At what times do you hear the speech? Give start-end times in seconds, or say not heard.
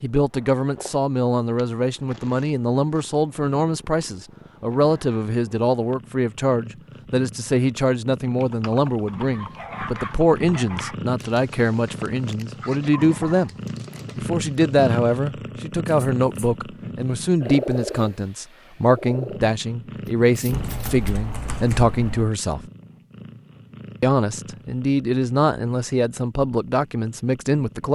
0.0-13.6, 14.2-22.6, 24.0-27.8.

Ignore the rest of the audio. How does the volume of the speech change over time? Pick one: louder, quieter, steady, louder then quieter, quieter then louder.
steady.